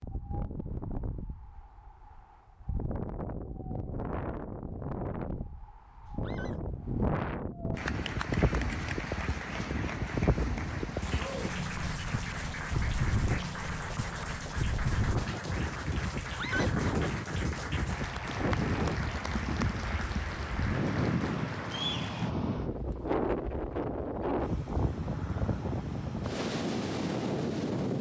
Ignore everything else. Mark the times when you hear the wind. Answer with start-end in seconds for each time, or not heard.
0.0-27.9.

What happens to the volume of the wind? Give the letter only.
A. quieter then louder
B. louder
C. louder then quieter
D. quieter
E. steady
B.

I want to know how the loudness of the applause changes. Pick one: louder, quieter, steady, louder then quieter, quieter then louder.
steady.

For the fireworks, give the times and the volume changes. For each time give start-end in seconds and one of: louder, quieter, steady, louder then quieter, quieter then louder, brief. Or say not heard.
not heard.